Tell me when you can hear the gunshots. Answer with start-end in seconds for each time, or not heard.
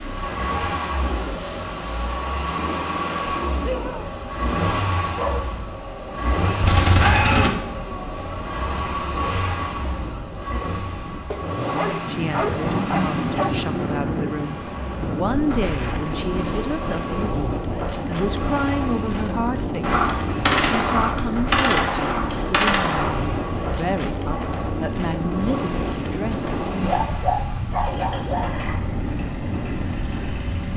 6.6-7.5, 19.8-23.1.